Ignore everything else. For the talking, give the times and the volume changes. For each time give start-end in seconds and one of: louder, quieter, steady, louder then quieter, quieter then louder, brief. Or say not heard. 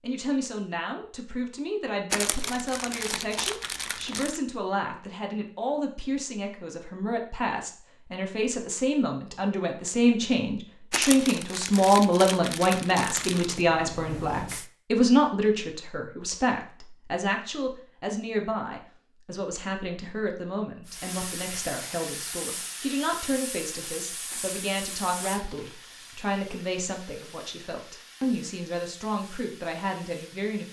0.0-30.6 louder then quieter.